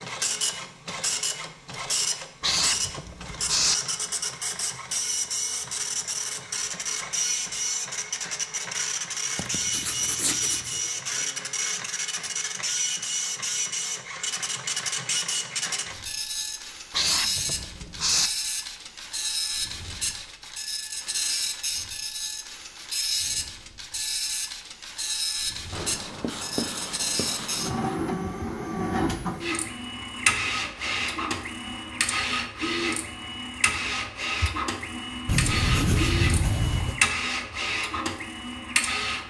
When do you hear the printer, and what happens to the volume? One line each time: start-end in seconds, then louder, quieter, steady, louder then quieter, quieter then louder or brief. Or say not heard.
0.0-39.2 steady.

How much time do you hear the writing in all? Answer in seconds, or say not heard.
8 s.